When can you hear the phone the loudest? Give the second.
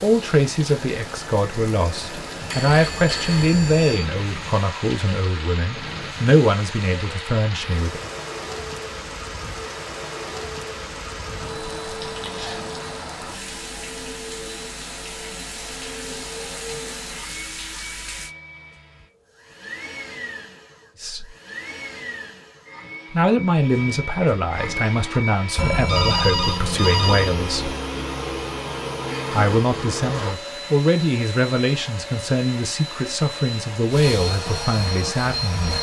26 s.